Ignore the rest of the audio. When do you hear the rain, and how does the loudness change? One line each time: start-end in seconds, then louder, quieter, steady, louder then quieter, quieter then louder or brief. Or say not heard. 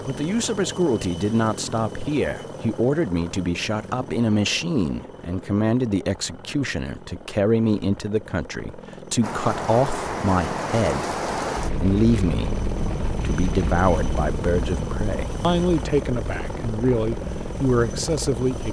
9.2-18.6 quieter.